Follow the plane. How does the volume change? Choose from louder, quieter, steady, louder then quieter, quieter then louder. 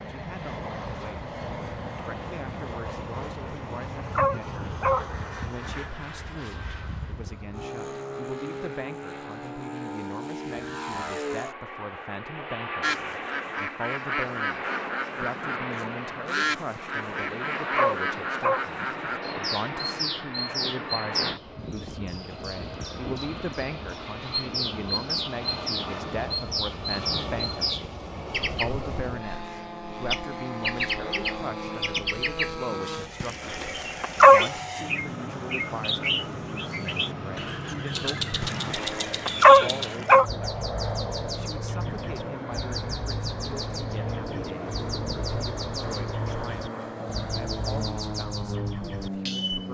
steady.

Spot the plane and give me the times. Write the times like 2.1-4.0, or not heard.
0.0-49.6.